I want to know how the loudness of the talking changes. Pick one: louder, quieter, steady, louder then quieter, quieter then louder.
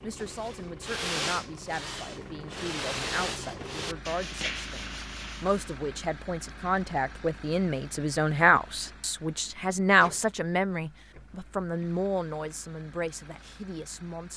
louder then quieter.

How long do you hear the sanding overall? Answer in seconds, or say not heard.
6 s.